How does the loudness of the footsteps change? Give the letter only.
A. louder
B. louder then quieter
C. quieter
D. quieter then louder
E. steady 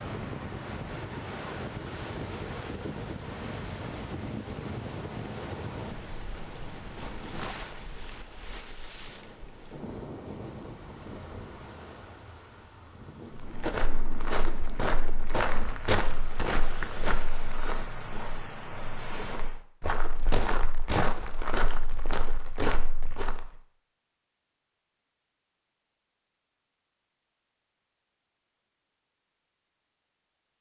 D.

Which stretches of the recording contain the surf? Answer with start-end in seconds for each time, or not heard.
0.0-19.6.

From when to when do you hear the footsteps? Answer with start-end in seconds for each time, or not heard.
13.3-23.5.